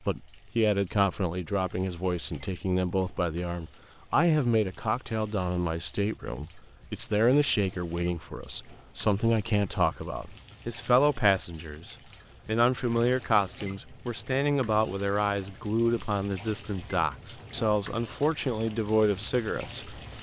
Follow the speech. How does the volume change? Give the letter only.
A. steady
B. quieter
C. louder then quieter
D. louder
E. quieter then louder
A.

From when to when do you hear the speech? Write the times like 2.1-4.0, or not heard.
0.1-20.0.